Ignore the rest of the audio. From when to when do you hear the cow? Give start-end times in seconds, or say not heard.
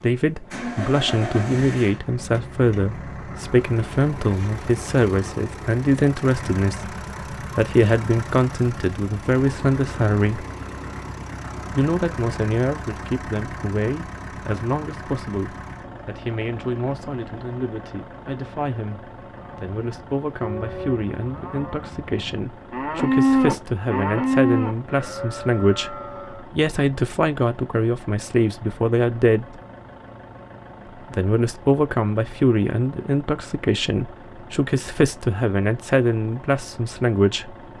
19.3-26.5.